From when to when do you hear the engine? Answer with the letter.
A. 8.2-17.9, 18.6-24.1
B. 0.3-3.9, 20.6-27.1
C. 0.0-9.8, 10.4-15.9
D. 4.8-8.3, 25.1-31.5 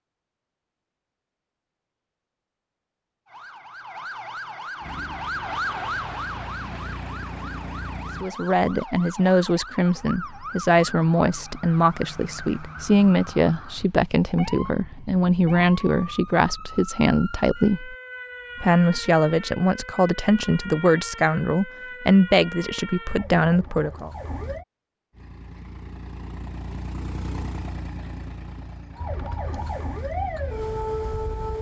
D.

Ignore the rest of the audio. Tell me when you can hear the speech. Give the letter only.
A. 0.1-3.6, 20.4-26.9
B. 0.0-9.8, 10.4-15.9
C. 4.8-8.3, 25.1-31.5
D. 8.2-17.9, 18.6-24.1
D.